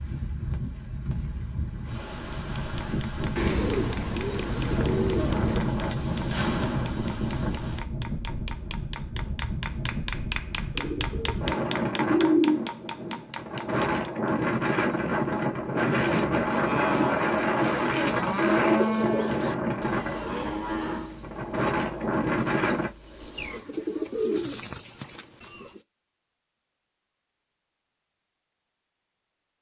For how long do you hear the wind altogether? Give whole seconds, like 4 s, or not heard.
23 s.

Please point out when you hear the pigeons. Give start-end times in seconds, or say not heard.
3.4-5.7, 10.8-12.7, 17.6-19.6, 23.5-25.8.